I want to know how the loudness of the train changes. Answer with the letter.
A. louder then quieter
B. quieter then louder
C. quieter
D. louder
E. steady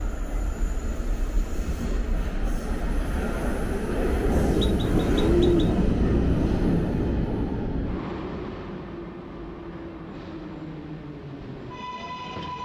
A.